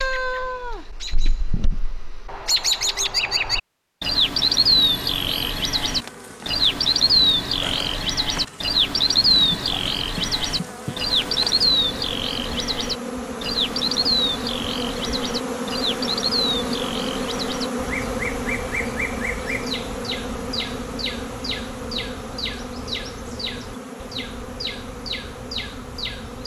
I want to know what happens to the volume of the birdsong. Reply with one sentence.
The loudness of the birdsong goes down.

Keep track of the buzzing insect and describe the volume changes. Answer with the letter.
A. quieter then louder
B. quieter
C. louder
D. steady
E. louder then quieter
E.